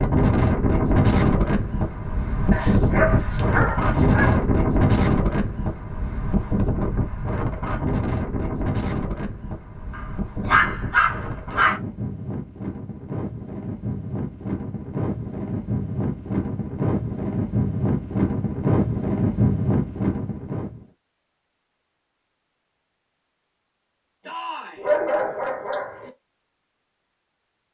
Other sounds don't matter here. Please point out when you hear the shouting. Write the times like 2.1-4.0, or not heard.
24.2-24.9.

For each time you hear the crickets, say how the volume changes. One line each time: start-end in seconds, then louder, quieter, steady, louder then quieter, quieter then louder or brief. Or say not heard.
not heard.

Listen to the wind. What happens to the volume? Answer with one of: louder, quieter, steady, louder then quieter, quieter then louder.
quieter then louder.